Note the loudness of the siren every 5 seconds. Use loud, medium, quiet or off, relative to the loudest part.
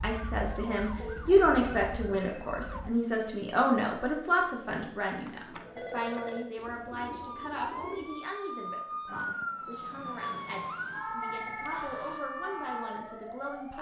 medium, loud, loud.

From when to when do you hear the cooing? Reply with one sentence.
You can hear the cooing from 6.5 to 8.2 s.